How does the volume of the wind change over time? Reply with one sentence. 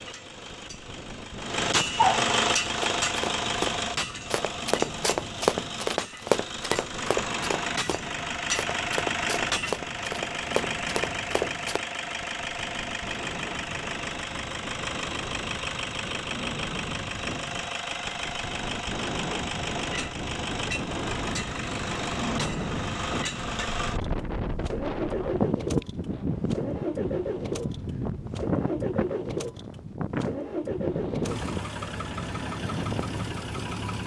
The volume of the wind goes up.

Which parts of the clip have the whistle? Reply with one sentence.
The whistle can't be heard in this clip.